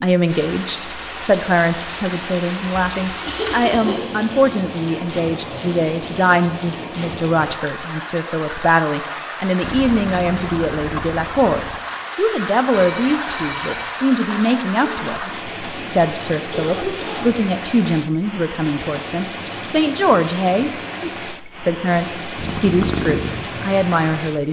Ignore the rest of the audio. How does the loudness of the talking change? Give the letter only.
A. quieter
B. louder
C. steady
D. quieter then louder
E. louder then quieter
C.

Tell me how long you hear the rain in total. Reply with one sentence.
The rain can be heard for 24 seconds in total.